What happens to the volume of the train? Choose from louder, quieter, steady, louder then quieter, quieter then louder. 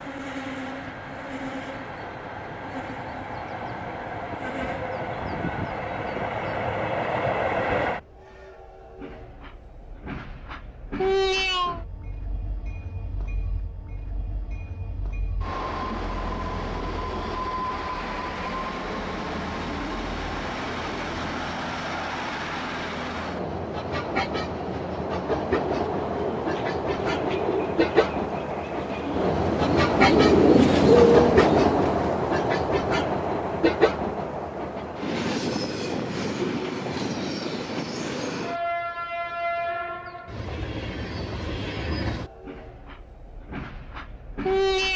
louder then quieter.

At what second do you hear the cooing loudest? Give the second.
31 s.